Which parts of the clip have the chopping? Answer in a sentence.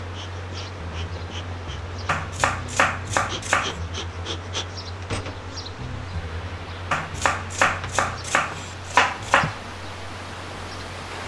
The chopping can be heard from 2.0 to 3.8 s and from 6.9 to 9.6 s.